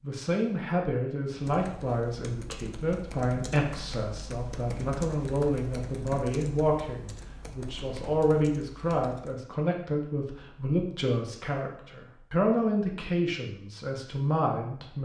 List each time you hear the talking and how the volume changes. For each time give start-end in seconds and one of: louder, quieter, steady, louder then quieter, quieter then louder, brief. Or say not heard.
0.0-14.9 steady.